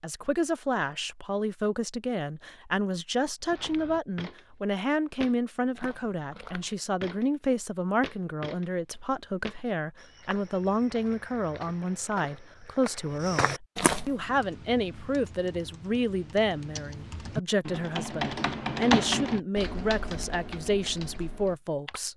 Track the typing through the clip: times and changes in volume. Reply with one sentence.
The typing can be heard from 14.1 to 22.0 s, getting louder then quieter.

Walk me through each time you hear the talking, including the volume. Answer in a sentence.
The talking can be heard from 0.0 to 22.1 s, at a steady volume.